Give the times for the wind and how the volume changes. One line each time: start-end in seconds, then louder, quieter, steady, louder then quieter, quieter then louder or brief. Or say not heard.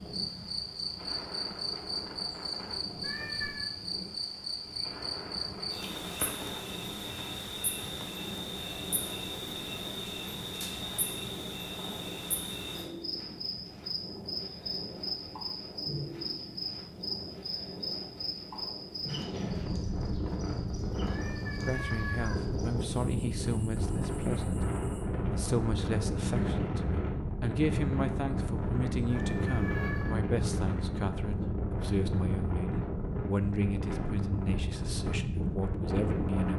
0.0-36.5 louder.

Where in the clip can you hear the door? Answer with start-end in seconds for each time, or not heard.
not heard.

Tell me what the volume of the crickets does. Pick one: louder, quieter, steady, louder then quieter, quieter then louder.
quieter.